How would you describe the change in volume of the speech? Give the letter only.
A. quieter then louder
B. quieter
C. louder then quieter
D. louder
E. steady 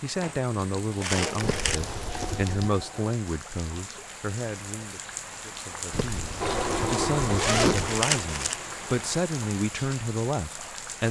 A.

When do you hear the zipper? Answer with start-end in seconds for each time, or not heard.
1.4-2.7, 5.9-8.0.